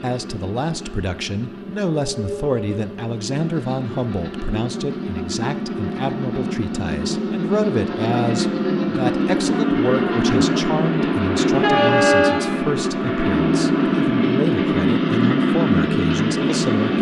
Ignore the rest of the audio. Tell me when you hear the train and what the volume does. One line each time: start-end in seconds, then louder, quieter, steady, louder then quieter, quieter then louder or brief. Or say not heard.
0.0-16.9 louder.